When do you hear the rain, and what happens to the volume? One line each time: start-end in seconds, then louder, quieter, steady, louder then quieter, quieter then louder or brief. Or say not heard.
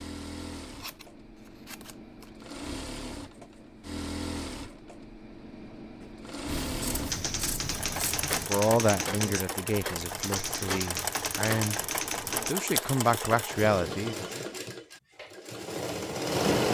not heard.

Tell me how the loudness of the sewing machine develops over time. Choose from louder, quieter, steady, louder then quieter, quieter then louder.
louder.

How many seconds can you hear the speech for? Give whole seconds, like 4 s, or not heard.
5 s.